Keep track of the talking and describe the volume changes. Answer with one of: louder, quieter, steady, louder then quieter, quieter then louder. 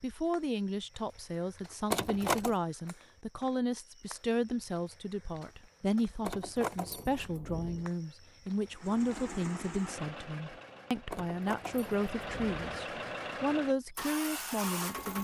steady.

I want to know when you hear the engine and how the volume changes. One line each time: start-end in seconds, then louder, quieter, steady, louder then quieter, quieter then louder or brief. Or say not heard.
8.7-15.1 quieter then louder.